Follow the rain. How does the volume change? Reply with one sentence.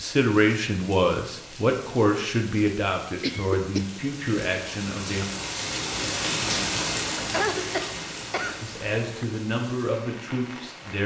The loudness of the rain goes up, then down.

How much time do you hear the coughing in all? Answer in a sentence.
You can hear the coughing for 3 seconds altogether.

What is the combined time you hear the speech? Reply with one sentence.
The speech can be heard for 8 seconds in total.